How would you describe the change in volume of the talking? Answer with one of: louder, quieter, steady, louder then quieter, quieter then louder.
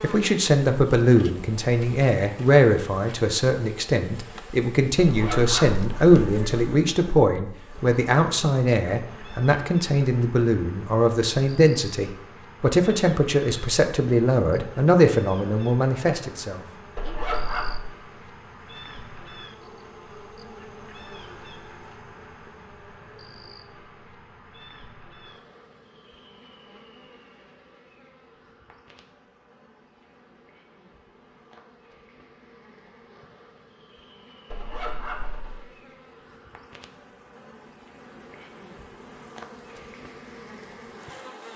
steady.